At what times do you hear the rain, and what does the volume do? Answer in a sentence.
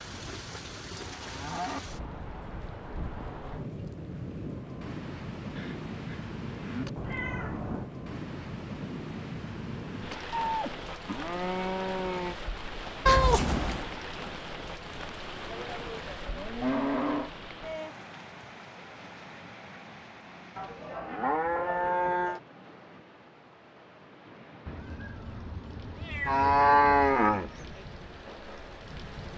The rain can be heard from 0.0 to 29.3 s, getting quieter.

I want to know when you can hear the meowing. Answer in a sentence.
You can hear the meowing from 7.0 to 7.9 s, from 13.1 to 13.9 s and from 24.6 to 27.1 s.